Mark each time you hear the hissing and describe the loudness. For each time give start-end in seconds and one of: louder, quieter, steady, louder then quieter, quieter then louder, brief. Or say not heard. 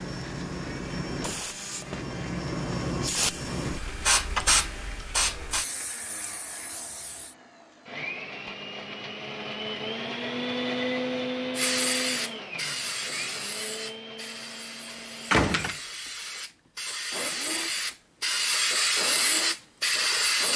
0.0-7.3 louder then quieter
11.6-20.5 quieter then louder.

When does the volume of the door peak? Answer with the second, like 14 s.
15 s.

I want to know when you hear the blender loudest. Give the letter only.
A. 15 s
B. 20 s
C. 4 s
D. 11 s
D.